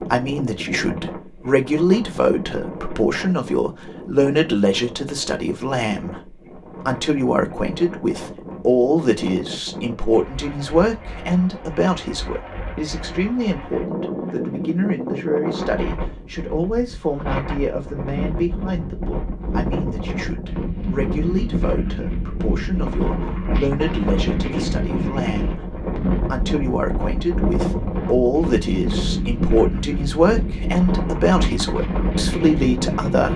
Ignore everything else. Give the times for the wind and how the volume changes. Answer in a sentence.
You can hear the wind from 0.0 to 33.3 s, getting louder.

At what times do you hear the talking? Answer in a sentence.
The talking can be heard from 0.0 to 33.3 s.